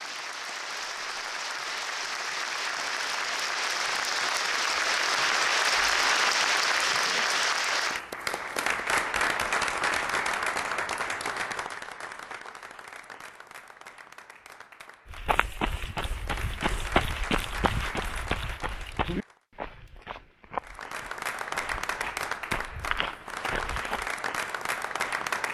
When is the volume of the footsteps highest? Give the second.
17 s.